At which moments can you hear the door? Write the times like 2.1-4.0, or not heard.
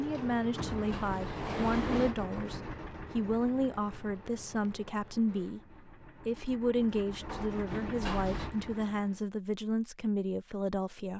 0.1-2.1, 7.2-8.5.